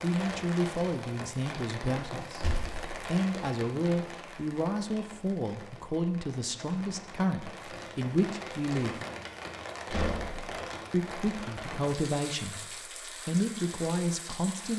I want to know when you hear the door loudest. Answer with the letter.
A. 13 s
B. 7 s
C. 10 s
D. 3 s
C.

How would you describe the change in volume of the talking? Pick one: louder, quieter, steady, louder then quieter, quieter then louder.
steady.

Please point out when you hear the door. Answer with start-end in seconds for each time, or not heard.
2.4-2.9, 9.9-10.6.